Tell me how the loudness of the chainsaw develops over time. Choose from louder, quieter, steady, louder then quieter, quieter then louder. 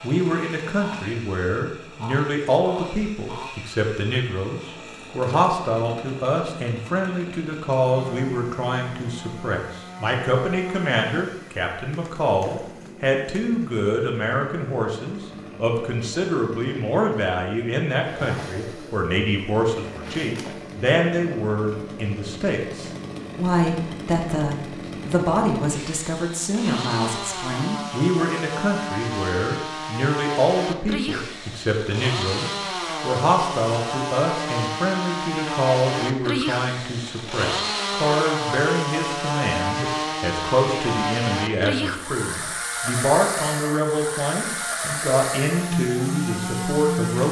louder.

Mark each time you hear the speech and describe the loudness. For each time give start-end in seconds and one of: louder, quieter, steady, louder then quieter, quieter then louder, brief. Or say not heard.
0.0-47.2 steady.